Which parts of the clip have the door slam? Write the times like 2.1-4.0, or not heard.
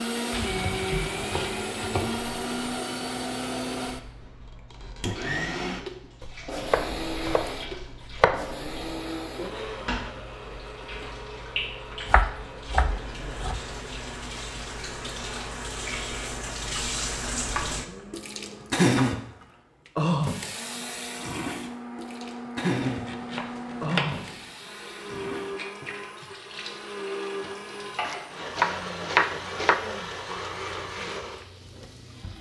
not heard.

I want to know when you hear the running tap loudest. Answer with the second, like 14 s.
19 s.